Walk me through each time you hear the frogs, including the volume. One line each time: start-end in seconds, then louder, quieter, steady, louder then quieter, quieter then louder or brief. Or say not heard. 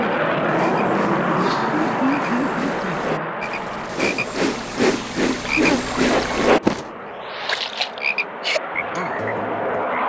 0.0-10.0 louder then quieter.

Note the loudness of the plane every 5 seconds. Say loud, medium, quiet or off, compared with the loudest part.
loud, medium.